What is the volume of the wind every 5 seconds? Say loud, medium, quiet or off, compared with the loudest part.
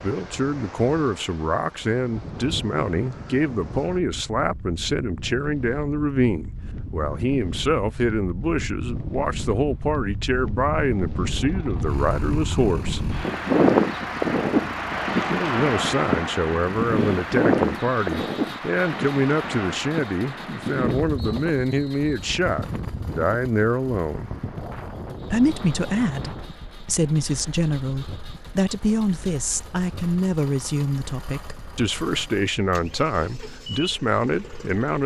quiet, quiet, loud, loud, medium, quiet, quiet.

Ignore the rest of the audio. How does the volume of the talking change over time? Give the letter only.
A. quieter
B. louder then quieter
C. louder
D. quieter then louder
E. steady
E.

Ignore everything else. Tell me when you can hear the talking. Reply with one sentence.
The talking can be heard from 0.0 to 13.0 s, from 15.2 to 24.3 s and from 25.3 to 35.0 s.